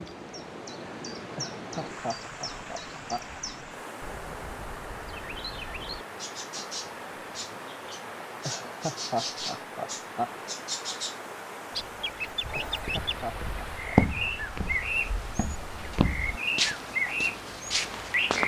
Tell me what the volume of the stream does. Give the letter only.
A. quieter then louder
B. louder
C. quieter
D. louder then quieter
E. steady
E.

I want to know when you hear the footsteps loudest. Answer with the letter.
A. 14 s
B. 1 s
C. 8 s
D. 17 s
A.